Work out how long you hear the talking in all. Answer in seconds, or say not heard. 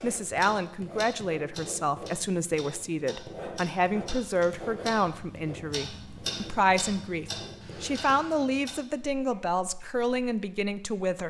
11 s.